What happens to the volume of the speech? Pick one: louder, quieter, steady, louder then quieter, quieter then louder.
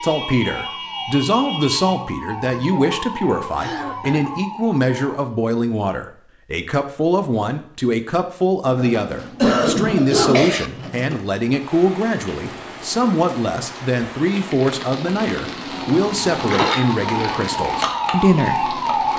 steady.